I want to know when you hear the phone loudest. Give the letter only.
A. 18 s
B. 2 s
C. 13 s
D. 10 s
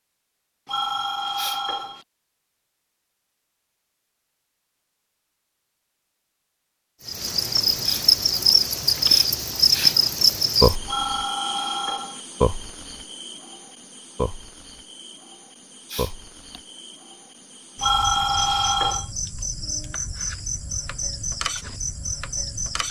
A.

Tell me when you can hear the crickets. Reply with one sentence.
The crickets can be heard from 7.0 to 22.8 s.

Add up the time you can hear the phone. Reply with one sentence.
You can hear the phone for 4 seconds altogether.